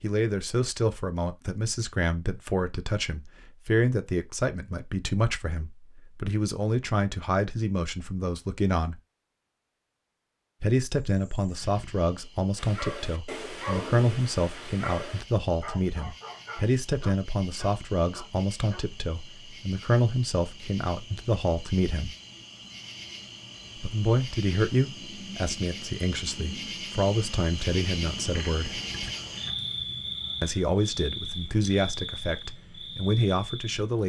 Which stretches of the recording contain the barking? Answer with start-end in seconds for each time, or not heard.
12.6-18.9.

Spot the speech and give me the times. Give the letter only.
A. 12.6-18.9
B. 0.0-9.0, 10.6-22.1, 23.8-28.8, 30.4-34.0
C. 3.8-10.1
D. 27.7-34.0
B.